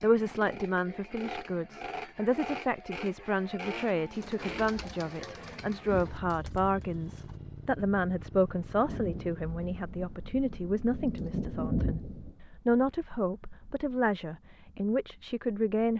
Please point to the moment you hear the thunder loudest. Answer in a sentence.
The loudest moment of the thunder is at 12 seconds.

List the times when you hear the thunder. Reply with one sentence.
You can hear the thunder from 8.8 to 12.3 s.